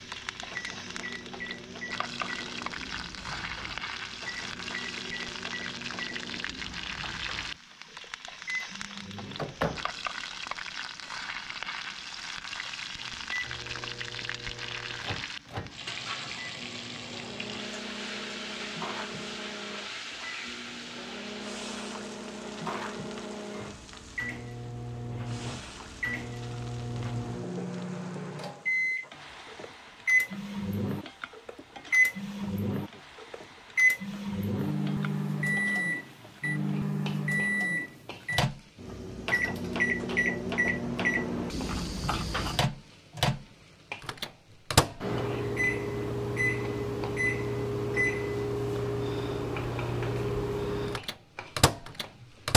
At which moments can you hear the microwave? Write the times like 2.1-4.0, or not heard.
0.0-52.5.